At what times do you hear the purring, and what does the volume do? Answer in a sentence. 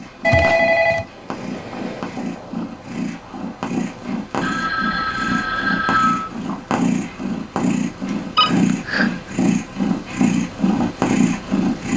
The purring can be heard from 0.0 to 11.9 s, getting louder.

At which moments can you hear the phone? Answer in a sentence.
You can hear the phone from 0.2 to 1.1 s, from 4.4 to 6.3 s and from 8.3 to 9.3 s.